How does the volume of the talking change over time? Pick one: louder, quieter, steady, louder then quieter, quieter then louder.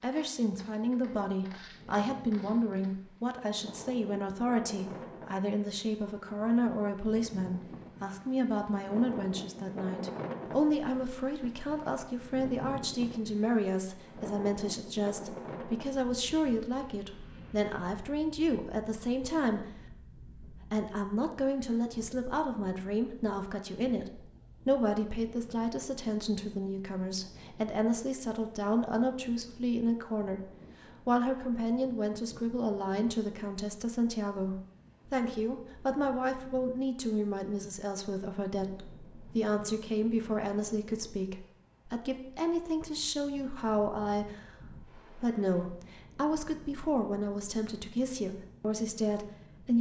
steady.